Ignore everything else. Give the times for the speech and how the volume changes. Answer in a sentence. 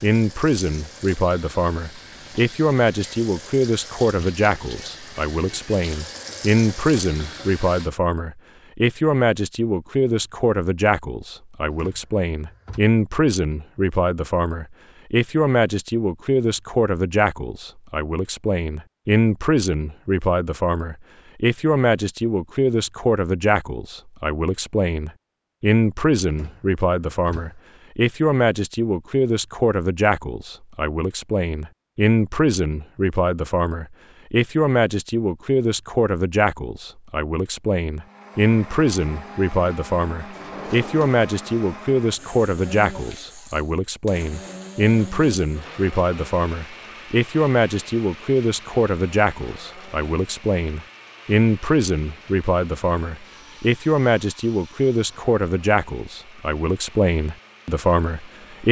You can hear the speech from 0.0 to 58.6 s, at a steady volume.